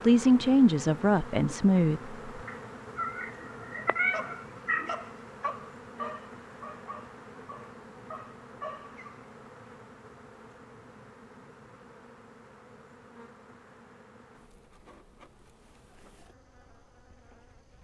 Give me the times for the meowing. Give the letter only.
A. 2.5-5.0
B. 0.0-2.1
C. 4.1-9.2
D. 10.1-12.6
A.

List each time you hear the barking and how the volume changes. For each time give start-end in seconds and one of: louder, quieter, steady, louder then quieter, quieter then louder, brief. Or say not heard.
4.1-9.2 quieter then louder.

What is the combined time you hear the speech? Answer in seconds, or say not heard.
2 s.